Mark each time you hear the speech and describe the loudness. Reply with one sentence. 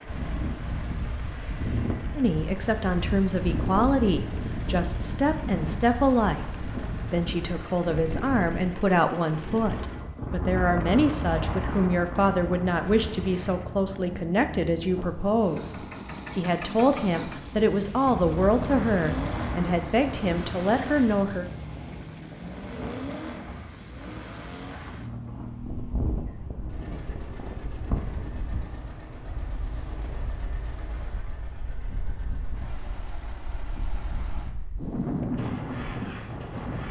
You can hear the speech from 2.1 to 15.8 s, at a steady volume; and from 16.4 to 21.4 s, at a steady volume.